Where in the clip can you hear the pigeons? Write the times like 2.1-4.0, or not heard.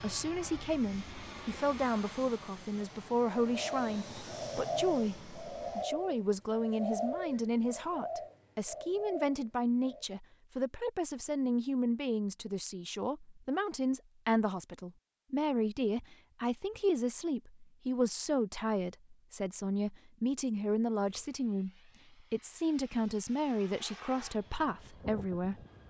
2.8-10.1.